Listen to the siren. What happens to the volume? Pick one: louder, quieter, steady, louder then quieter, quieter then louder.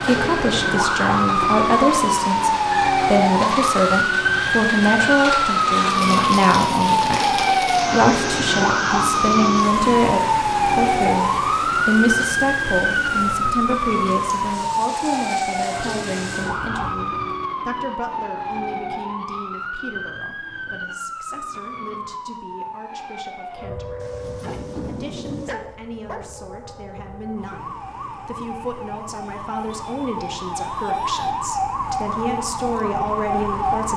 quieter then louder.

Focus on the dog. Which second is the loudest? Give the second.
25 s.